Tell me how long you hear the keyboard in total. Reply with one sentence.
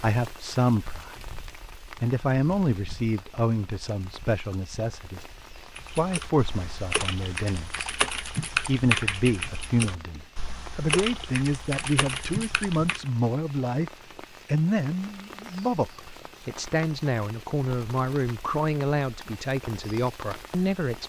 You can hear the keyboard for 7 seconds altogether.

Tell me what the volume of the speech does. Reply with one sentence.
The volume of the speech stays about the same.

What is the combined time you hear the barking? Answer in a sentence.
You can't hear the barking here.